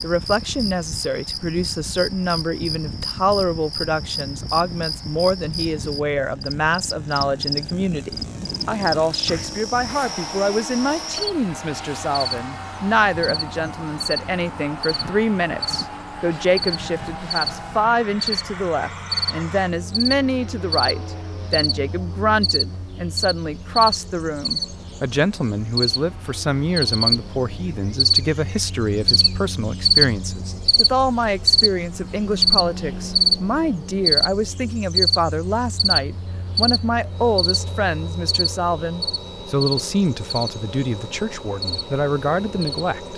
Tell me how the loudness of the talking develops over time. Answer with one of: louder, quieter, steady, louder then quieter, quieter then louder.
steady.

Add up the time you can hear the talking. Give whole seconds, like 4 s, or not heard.
43 s.